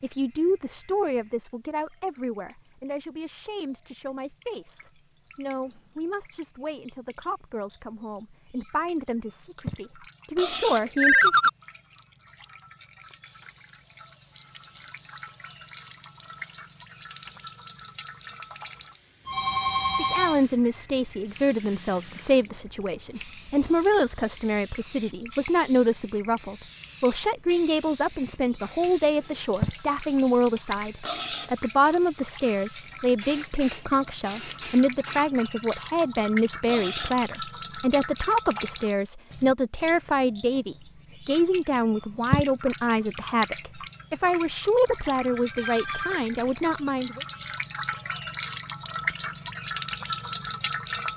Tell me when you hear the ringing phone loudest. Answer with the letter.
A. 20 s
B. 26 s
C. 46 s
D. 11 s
D.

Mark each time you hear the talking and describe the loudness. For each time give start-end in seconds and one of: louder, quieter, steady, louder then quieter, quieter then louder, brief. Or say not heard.
0.0-11.3 quieter then louder
19.9-47.2 steady.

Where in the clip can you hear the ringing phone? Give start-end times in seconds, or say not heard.
10.9-11.5, 19.2-20.4, 44.9-46.6.